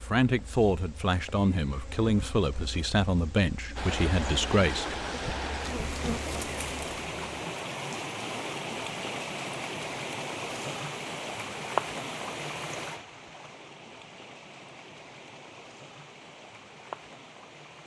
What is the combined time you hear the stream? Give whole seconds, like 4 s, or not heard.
14 s.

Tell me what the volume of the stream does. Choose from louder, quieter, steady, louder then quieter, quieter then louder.
quieter.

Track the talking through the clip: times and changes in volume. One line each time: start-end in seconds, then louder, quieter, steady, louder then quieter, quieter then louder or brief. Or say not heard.
0.0-5.0 steady.